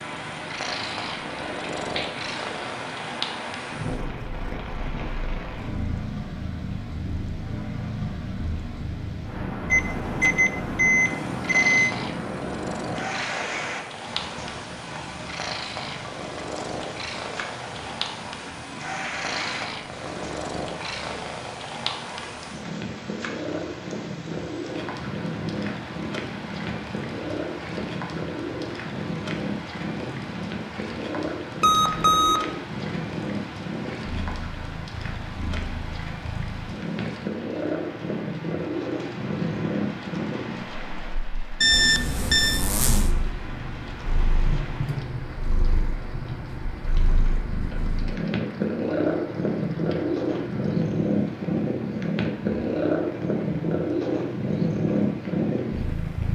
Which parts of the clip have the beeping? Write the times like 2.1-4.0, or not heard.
9.7-11.9, 31.6-32.5, 41.6-42.6.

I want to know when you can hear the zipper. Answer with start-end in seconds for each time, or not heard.
41.7-43.1.